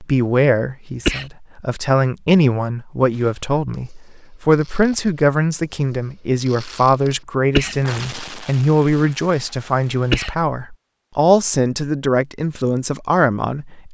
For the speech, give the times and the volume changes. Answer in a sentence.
You can hear the speech from 0.0 to 13.8 s, at a steady volume.